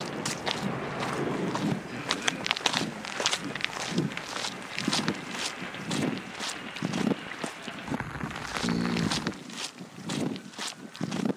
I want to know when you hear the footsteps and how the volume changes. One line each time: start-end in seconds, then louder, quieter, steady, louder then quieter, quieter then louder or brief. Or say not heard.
0.0-11.3 steady.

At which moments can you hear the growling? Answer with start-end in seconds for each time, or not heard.
1.0-2.5, 8.6-9.2.